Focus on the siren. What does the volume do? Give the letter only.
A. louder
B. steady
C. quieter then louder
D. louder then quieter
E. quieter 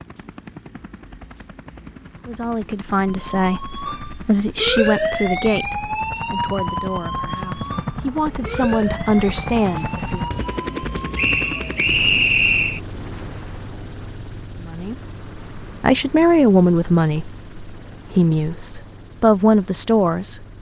E.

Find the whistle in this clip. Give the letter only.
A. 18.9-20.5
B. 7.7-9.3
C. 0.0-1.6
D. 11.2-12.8
D.